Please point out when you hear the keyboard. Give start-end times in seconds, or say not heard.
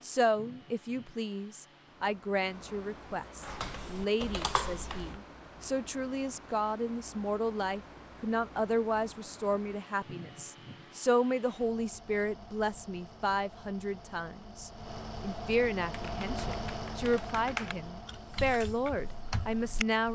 3.4-5.2, 15.9-20.0.